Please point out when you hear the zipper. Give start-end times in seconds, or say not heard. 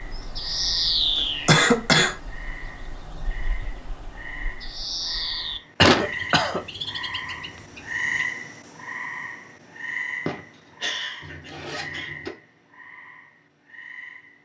11.2-12.3.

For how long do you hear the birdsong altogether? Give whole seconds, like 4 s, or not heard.
8 s.